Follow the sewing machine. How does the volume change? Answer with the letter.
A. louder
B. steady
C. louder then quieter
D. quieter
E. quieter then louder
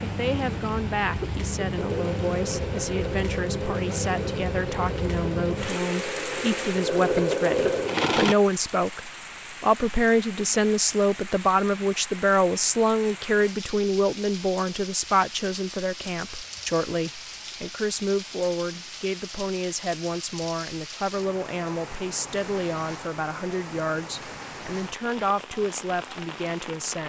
A.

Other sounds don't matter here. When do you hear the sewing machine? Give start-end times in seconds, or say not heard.
0.1-8.3.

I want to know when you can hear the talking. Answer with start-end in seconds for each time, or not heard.
0.0-27.0.